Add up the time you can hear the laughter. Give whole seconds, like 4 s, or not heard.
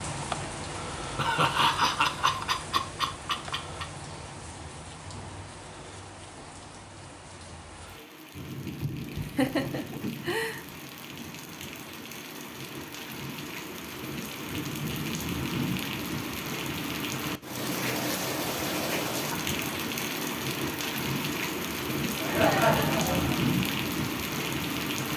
6 s.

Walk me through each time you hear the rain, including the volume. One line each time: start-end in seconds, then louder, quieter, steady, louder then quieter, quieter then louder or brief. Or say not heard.
0.0-25.1 louder.